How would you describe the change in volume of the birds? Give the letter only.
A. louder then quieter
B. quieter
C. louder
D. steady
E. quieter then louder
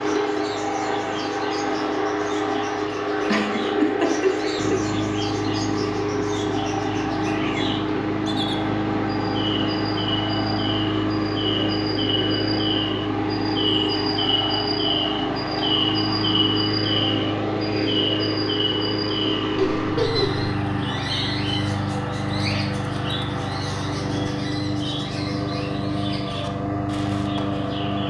A.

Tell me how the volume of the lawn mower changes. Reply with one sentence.
The volume of the lawn mower stays about the same.